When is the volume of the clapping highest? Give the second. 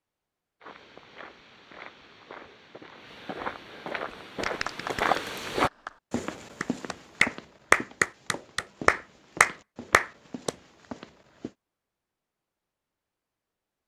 8 s.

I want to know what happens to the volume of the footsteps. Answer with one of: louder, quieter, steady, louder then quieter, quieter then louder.
louder then quieter.